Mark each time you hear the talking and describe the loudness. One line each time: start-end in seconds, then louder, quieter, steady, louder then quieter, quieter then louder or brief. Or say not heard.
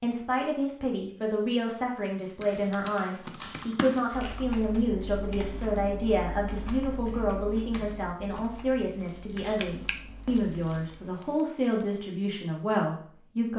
0.0-13.5 steady.